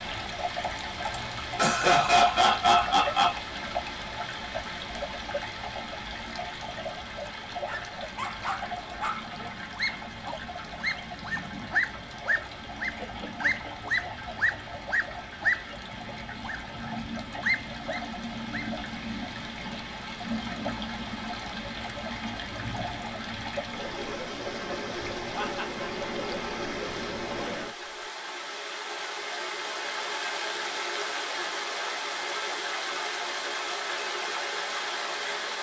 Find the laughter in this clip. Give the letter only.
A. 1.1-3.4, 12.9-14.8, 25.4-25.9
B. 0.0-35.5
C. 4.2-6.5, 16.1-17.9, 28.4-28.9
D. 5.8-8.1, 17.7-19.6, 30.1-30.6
A.